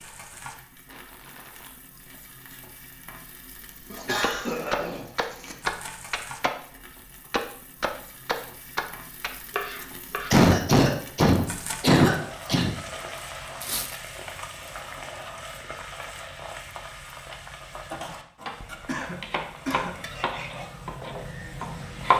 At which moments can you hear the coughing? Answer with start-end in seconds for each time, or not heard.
3.9-5.5, 10.3-12.8, 18.9-20.0.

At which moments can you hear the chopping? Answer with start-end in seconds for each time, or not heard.
4.2-10.3, 19.0-22.1.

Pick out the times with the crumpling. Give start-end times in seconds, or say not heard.
0.8-1.8, 13.6-14.2.